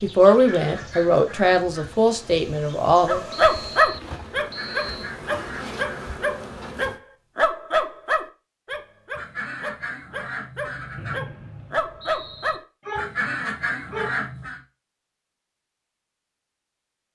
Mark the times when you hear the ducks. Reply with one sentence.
The ducks can be heard from 0.2 to 1.9 s, from 4.3 to 6.2 s, from 9.1 to 11.2 s and from 12.9 to 14.6 s.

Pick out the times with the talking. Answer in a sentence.
The talking can be heard from 0.0 to 3.2 s.